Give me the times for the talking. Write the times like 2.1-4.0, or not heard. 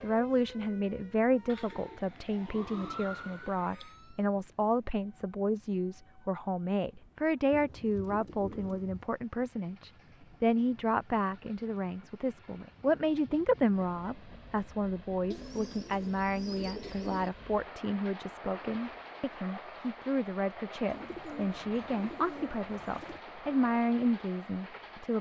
0.0-25.1.